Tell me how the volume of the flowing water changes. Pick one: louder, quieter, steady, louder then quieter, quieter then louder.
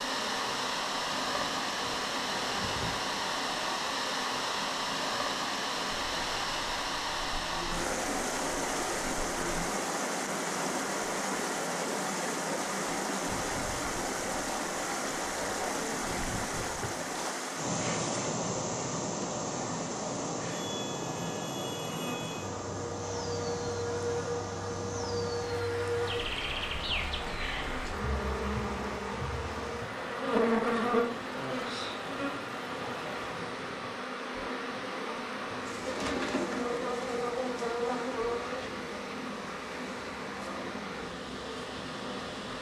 quieter.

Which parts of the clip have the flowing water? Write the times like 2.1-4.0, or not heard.
0.0-42.5.